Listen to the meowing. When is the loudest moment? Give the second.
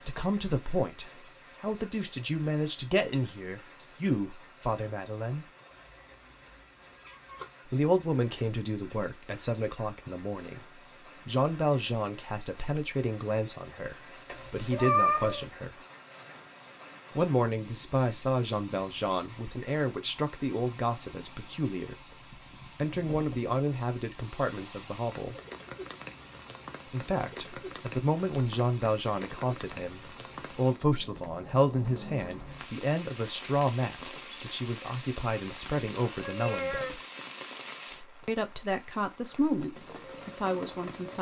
15 s.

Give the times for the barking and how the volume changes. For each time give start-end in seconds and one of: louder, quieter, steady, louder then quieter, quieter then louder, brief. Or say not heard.
not heard.